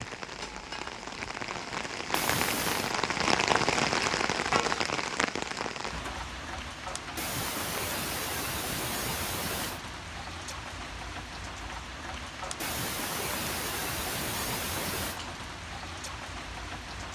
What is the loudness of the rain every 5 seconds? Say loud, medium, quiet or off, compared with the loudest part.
loud, medium, medium, medium.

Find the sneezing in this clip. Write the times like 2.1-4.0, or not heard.
2.1-3.0, 7.2-9.8, 12.6-15.2.